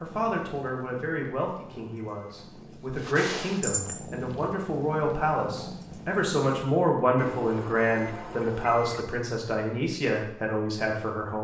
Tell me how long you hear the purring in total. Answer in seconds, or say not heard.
7 s.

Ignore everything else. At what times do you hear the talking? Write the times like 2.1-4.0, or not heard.
0.0-11.3.